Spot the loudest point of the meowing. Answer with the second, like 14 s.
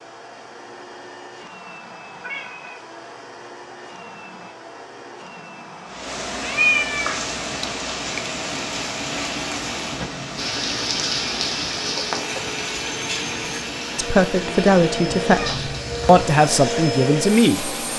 7 s.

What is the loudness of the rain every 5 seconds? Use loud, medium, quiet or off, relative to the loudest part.
off, loud, loud, medium.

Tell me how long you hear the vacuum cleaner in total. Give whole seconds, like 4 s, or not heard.
18 s.